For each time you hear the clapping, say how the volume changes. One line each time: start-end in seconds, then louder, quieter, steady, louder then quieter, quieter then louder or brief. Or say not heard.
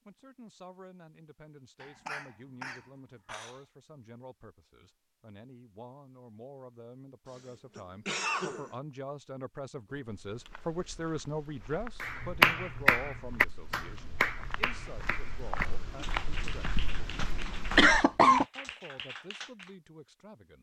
12.0-19.7 quieter.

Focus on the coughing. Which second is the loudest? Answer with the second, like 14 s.
18 s.